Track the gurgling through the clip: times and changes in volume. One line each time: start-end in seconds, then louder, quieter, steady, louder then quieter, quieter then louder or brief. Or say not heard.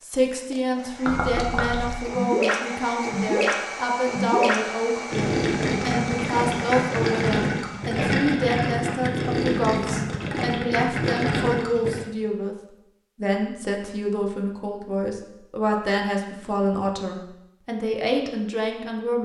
1.1-12.0 steady.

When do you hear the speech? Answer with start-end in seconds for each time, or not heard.
0.0-12.6, 13.2-19.2.